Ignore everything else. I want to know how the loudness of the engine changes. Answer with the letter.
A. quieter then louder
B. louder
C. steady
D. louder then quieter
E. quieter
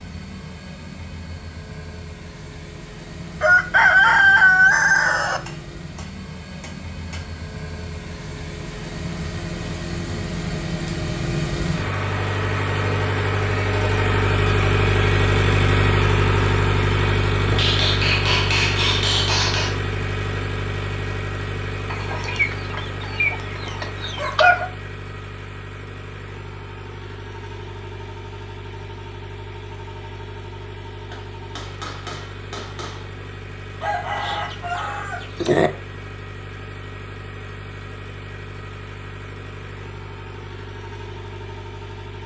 D.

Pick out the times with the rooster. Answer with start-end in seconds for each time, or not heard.
3.4-5.4, 21.9-24.7, 33.8-35.7.